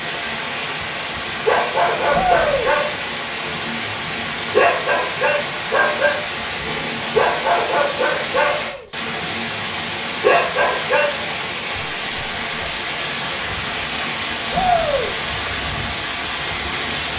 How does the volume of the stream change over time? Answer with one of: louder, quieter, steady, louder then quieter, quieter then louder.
steady.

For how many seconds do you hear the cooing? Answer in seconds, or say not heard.
not heard.